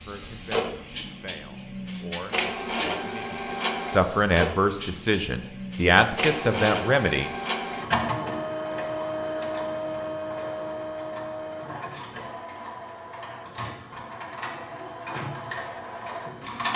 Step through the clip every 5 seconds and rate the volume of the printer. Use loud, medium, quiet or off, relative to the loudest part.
loud, loud, medium, loud.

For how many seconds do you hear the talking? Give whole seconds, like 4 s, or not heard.
7 s.